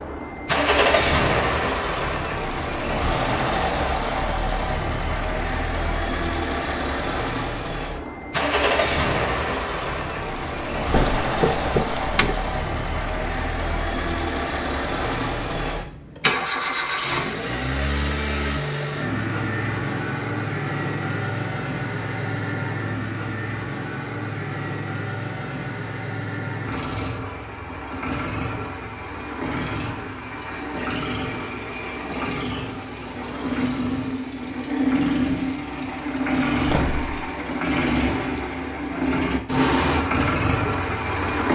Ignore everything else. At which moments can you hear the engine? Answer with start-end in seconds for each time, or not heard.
0.0-41.5.